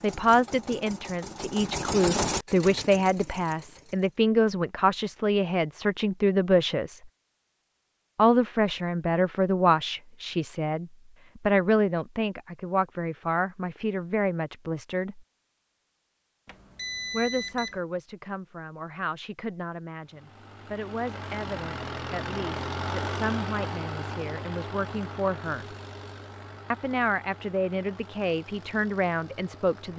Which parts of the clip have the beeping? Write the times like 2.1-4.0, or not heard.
16.4-17.8.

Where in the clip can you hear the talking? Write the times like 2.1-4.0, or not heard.
0.0-7.0, 8.2-15.2, 17.1-25.8, 26.7-29.9.